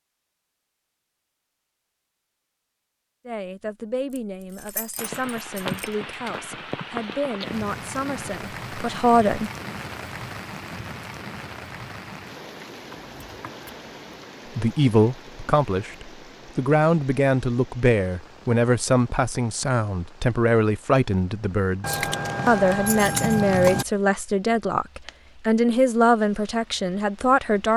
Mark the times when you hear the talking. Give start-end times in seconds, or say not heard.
3.2-9.5, 14.6-27.7.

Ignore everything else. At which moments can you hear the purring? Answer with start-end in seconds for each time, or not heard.
not heard.